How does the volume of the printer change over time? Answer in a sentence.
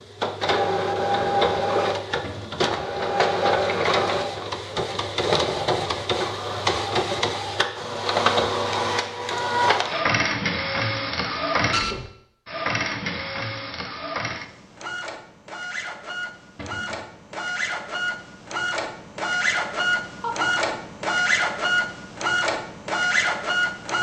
The volume of the printer goes down, then up.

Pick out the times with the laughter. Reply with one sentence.
The laughter can be heard from 20.2 to 20.8 s.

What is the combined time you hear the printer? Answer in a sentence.
The printer can be heard for 24 seconds in total.